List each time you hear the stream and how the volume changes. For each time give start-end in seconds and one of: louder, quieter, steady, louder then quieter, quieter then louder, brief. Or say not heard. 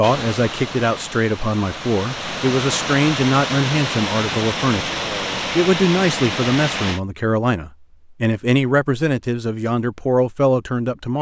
0.0-7.0 louder.